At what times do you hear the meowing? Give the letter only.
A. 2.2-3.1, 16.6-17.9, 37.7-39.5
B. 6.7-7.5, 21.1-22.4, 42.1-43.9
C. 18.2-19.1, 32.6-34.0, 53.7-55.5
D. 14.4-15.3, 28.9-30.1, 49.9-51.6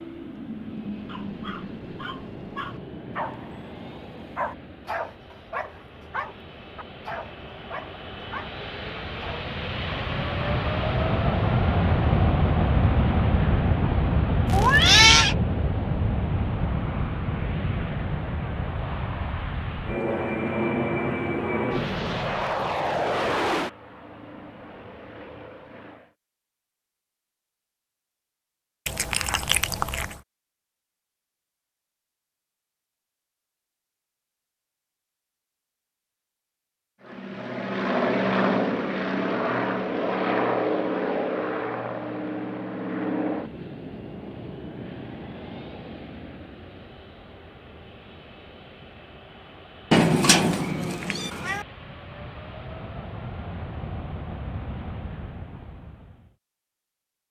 D.